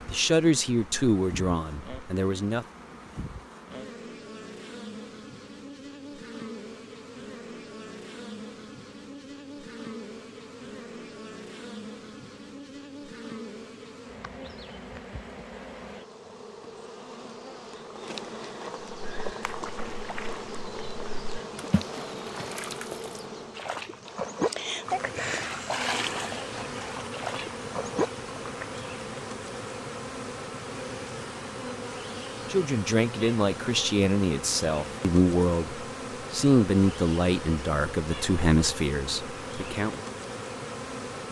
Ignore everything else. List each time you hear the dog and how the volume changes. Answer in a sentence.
The dog can't be heard in this clip.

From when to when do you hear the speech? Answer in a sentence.
The speech can be heard from 0.1 to 2.6 s and from 32.5 to 40.0 s.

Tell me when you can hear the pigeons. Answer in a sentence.
You can't hear the pigeons here.